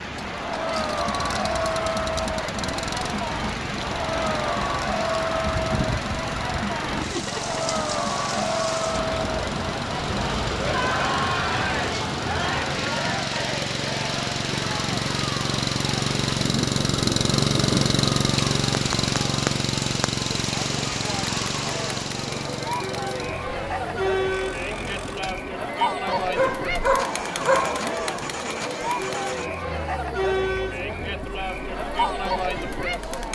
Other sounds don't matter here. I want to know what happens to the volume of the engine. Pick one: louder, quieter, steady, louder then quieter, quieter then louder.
louder then quieter.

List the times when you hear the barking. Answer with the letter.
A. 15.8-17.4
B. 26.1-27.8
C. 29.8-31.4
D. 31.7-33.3
B.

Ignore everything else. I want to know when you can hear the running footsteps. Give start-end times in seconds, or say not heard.
not heard.